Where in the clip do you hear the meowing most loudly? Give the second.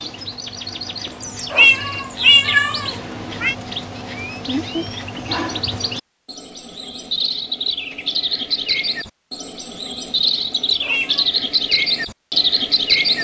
2 s.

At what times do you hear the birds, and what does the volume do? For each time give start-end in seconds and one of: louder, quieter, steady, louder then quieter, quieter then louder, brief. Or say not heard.
0.0-13.1 louder.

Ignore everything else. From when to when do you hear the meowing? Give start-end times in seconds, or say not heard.
1.1-3.5, 10.3-11.3.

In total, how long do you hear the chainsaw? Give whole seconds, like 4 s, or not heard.
not heard.